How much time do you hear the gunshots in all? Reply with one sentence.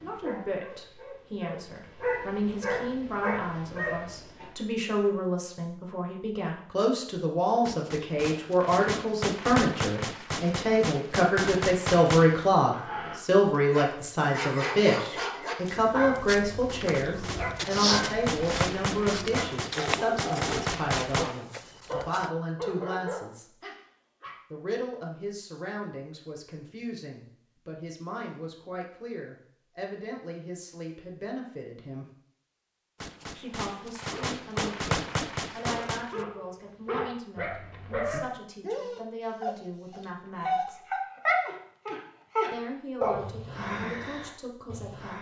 The gunshots can be heard for 13 seconds in total.